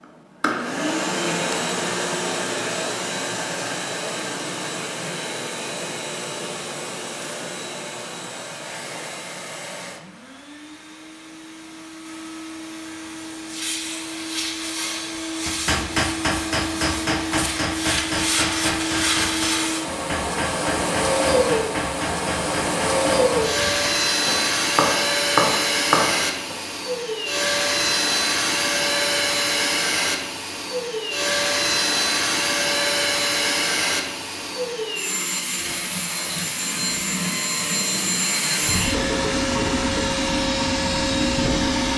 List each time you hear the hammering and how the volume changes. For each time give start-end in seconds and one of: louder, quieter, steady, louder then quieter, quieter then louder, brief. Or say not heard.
15.2-26.6 quieter then louder.